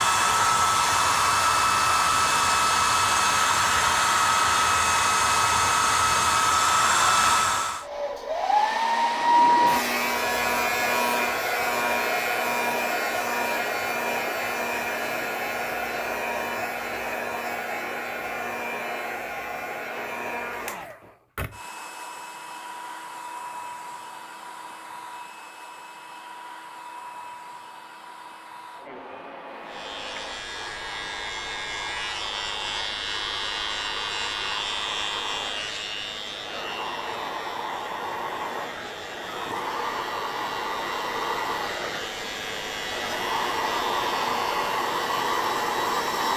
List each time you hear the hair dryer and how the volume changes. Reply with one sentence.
The hair dryer can be heard from 0.0 to 46.3 s, getting quieter then louder.